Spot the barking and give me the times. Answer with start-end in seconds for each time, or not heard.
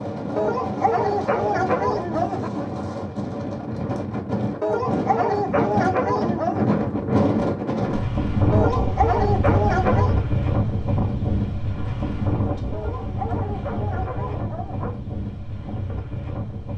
0.3-2.5, 4.6-6.8, 8.5-10.2, 12.7-14.9.